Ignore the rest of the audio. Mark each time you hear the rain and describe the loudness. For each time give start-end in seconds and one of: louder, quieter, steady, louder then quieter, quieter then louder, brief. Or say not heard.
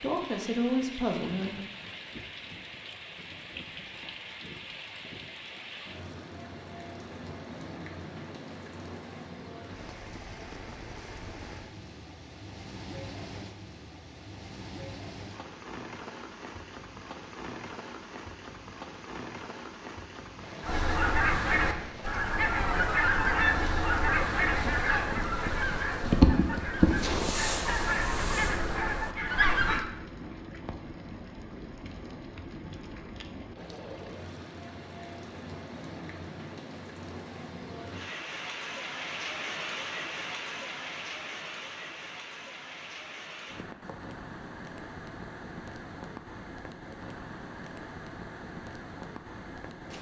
0.0-49.9 steady.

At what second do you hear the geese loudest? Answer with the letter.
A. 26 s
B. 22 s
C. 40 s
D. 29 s
A.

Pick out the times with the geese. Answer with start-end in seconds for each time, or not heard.
20.6-29.9.